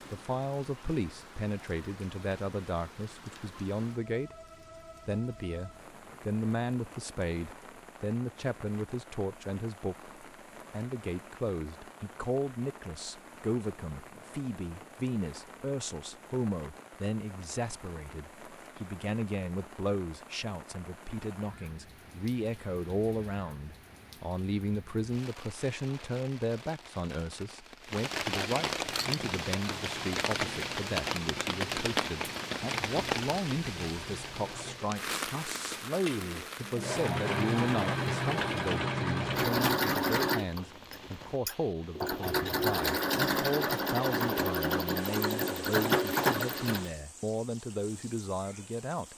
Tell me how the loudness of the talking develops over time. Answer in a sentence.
The volume of the talking stays about the same.